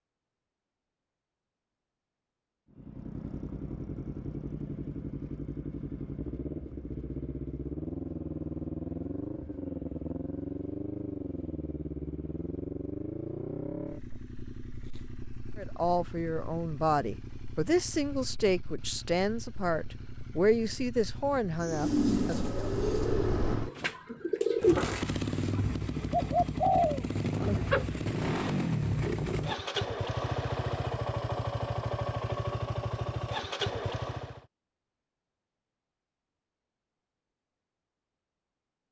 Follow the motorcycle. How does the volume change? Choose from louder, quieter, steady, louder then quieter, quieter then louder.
quieter then louder.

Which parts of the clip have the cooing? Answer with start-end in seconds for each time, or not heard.
21.6-28.0.